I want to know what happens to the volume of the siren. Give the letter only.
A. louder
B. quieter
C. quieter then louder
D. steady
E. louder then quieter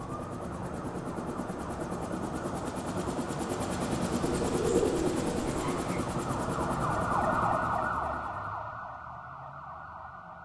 E.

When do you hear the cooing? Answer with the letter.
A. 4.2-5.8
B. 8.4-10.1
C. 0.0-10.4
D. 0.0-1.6
A.